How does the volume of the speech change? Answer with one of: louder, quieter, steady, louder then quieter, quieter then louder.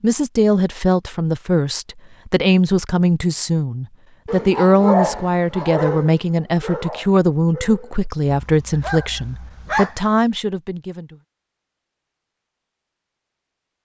steady.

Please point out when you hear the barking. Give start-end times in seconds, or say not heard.
4.2-9.9.